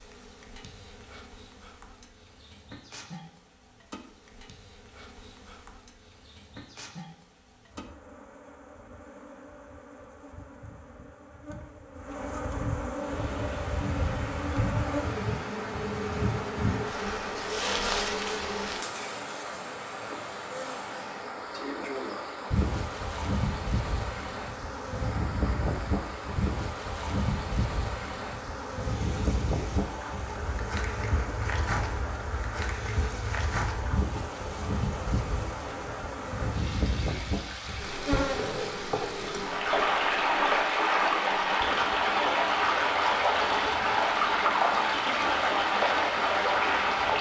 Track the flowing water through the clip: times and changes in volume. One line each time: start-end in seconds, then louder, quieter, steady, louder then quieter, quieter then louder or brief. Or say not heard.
12.9-47.1 louder.